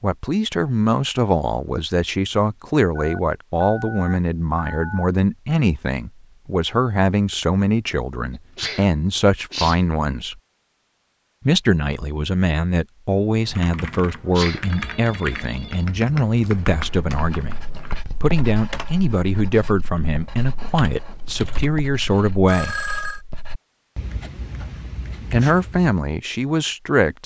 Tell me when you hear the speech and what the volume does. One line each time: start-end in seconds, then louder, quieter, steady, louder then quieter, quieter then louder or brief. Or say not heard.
0.0-10.3 steady
11.4-22.8 steady
25.3-27.2 brief.